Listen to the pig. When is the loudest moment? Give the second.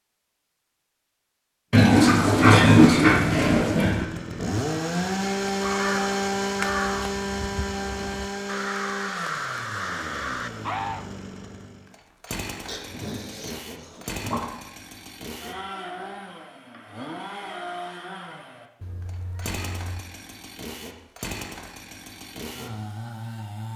3 s.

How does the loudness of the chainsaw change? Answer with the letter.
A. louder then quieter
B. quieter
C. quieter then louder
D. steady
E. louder
B.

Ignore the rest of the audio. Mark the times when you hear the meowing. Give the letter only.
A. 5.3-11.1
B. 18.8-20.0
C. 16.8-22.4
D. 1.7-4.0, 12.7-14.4
B.